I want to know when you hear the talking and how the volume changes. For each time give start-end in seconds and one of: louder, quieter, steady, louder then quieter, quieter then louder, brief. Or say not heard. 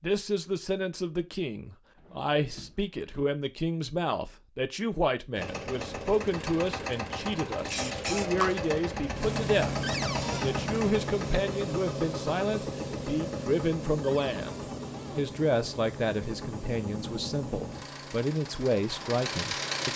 0.0-19.9 steady.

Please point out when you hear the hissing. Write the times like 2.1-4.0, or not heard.
7.7-19.9.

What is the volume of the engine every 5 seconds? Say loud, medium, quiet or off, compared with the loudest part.
off, loud, loud, loud.